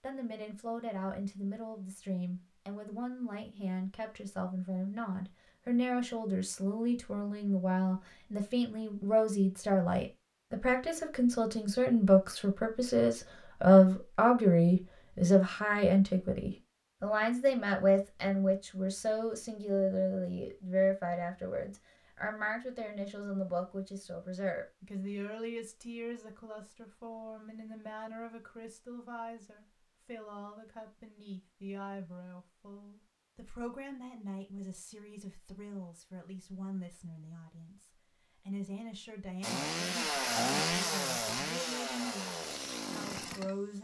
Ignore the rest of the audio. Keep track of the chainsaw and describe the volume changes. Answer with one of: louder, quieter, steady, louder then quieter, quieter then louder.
quieter.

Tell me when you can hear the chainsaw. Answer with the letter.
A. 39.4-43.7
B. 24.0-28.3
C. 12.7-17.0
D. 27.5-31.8
A.